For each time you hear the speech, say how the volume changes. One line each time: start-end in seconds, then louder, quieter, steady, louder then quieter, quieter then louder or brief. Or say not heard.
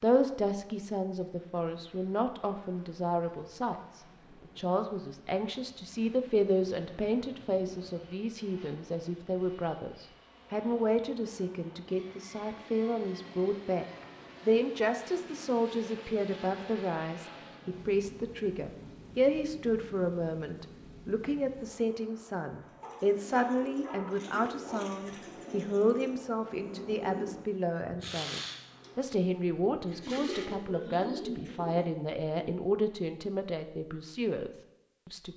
0.0-13.8 steady
14.4-35.3 steady.